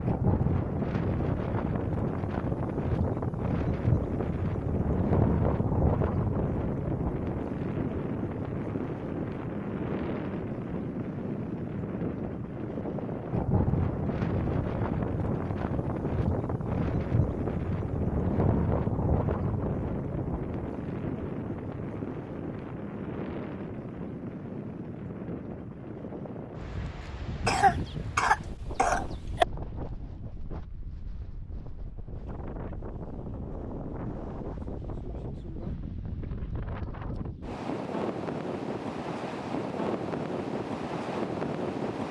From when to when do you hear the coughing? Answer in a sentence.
You can hear the coughing from 27.4 to 29.4 s.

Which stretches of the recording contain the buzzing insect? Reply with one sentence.
The buzzing insect can't be heard in this clip.